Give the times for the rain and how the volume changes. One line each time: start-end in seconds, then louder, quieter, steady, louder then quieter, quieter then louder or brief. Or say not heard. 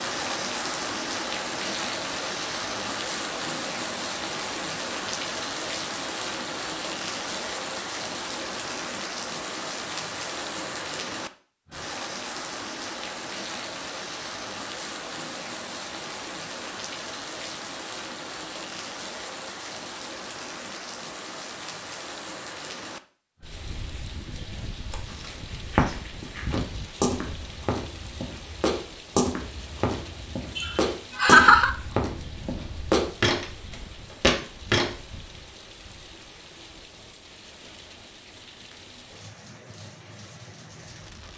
0.0-41.3 quieter.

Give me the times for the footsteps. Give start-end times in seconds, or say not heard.
24.9-34.9.